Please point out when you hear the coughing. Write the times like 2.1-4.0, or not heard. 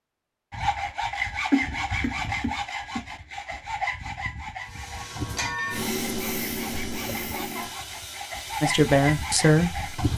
1.5-3.0, 7.2-7.8.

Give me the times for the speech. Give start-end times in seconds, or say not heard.
8.6-10.1.